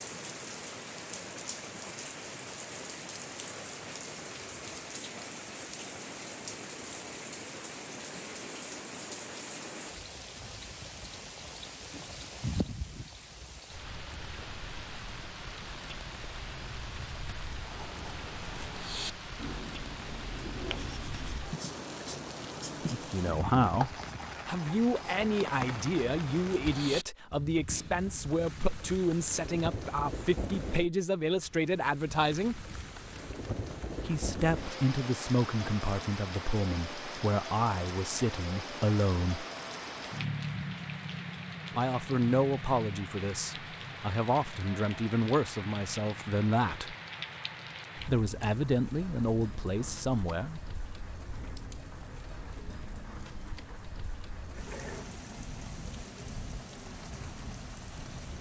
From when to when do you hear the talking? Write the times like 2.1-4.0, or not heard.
22.9-32.7, 34.0-39.5, 41.8-47.0, 48.0-50.6.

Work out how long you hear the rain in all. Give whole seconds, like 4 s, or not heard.
58 s.